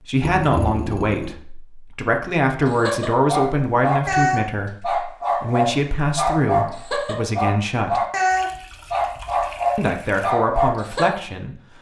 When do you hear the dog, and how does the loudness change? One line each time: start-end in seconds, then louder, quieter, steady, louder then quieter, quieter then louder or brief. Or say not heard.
2.6-11.1 steady.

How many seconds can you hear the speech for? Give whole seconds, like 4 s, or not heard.
10 s.